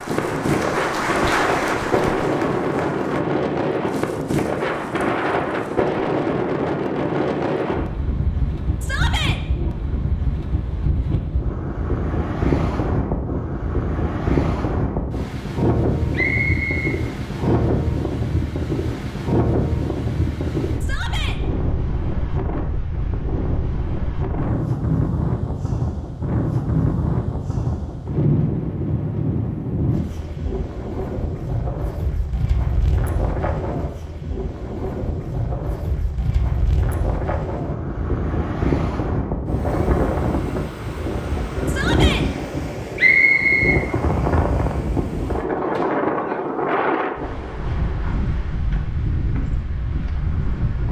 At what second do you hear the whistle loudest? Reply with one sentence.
The volume of the whistle peaks at 43 seconds.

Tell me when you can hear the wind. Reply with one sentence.
The wind can be heard from 0.0 to 50.8 s.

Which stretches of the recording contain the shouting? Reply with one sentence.
The shouting can be heard from 8.8 to 9.4 s, from 20.8 to 21.4 s and from 41.6 to 42.2 s.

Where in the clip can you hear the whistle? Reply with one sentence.
The whistle can be heard from 16.1 to 17.8 s and from 43.0 to 43.8 s.